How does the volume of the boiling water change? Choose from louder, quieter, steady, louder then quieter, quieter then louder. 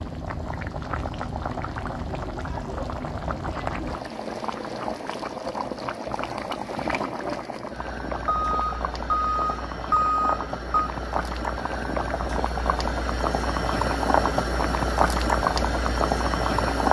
louder.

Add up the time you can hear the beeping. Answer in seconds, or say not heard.
3 s.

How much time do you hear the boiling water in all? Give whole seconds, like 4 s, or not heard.
17 s.